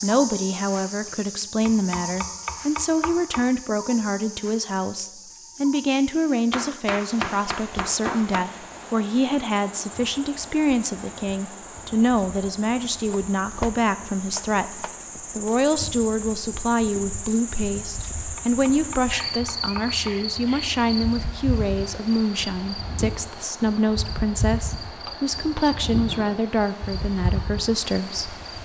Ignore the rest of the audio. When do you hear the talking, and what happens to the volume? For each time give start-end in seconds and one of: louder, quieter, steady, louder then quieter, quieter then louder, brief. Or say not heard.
0.0-28.4 steady.